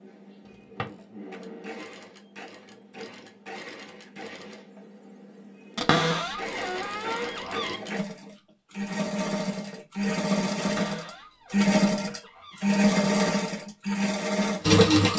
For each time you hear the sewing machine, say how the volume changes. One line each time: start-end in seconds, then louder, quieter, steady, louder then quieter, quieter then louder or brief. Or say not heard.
0.0-15.1 louder.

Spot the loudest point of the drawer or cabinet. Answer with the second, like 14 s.
6 s.